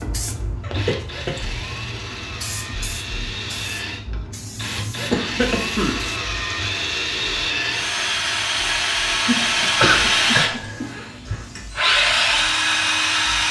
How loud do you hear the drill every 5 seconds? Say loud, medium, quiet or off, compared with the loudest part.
quiet, loud, loud.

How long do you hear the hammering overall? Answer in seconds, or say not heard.
not heard.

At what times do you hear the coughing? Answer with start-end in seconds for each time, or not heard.
0.6-1.8, 5.1-6.0, 9.2-10.8.